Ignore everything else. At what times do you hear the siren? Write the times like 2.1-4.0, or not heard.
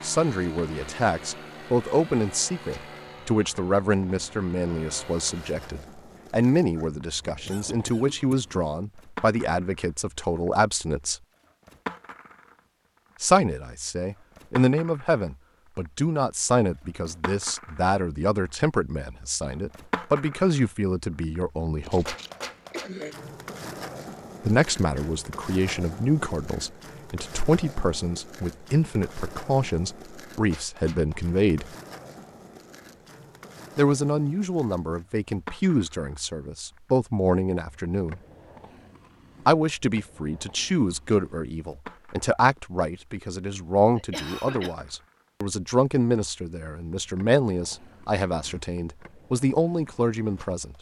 not heard.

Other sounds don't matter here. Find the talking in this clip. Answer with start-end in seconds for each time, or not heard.
0.0-11.2, 13.2-22.1, 24.4-31.7, 33.8-38.2, 39.5-50.7.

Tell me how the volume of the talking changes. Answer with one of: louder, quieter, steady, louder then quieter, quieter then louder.
steady.